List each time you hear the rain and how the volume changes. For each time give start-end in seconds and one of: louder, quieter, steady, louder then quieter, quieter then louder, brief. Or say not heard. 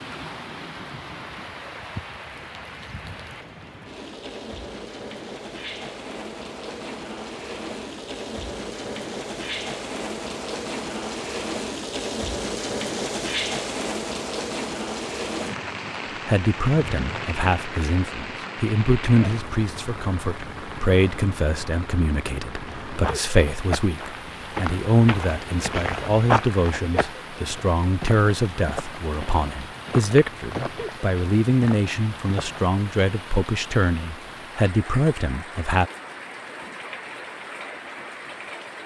0.0-38.8 louder then quieter.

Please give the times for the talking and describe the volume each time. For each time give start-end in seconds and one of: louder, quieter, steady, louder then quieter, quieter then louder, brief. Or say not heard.
16.2-35.9 steady.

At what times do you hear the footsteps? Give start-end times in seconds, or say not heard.
22.9-32.7.